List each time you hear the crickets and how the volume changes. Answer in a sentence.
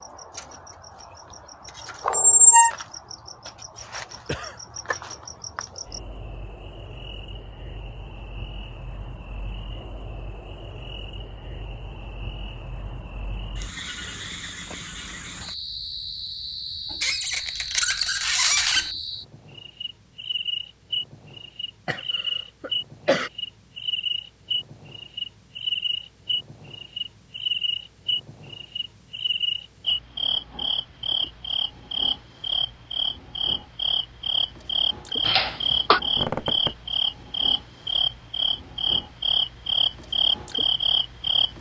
You can hear the crickets from 0.0 to 41.5 s, getting louder.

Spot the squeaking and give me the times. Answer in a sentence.
You can hear the squeaking from 2.0 to 2.7 s, from 17.0 to 18.9 s and from 36.1 to 36.7 s.